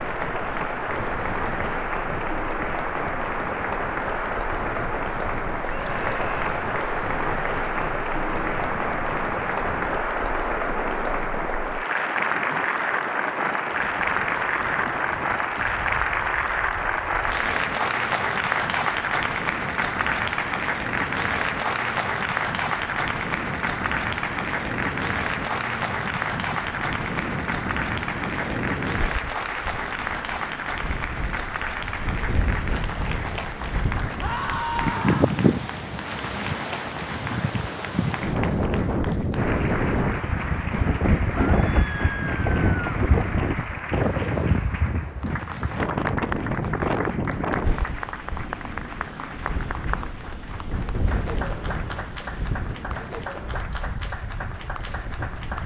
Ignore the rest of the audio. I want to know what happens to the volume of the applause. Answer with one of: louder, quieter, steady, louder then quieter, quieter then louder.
quieter.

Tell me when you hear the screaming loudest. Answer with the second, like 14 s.
35 s.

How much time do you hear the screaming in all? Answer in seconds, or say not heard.
4 s.